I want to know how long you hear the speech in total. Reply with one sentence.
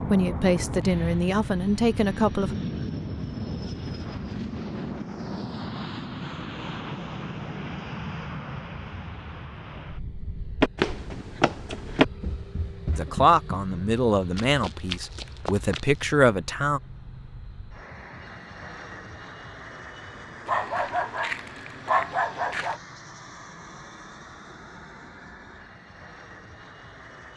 The speech can be heard for 6 seconds in total.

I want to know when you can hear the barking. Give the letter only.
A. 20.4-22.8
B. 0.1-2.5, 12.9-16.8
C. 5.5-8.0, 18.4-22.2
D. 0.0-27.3
A.